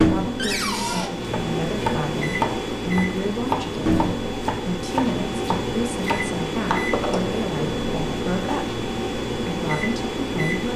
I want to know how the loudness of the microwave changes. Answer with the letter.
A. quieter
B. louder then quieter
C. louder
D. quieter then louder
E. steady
E.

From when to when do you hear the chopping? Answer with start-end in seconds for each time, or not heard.
1.2-6.8.